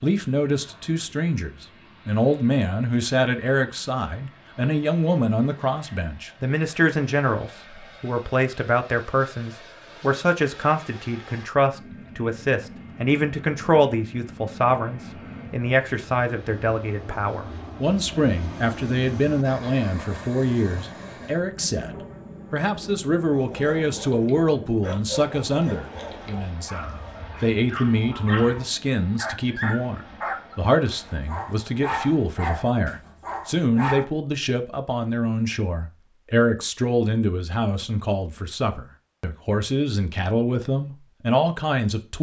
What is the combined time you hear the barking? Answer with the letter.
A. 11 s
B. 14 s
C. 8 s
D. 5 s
A.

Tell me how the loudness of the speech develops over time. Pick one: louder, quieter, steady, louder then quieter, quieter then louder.
steady.